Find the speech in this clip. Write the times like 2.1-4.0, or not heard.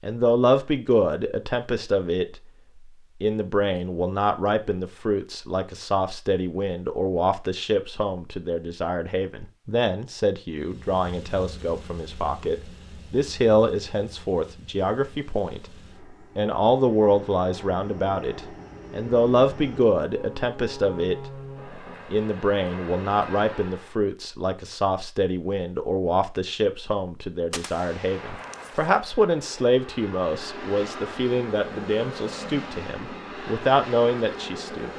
0.0-2.4, 3.2-15.7, 16.4-21.3, 22.1-34.9.